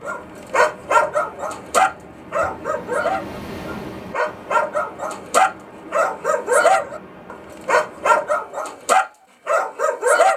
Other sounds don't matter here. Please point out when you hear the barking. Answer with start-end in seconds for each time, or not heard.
0.0-10.3.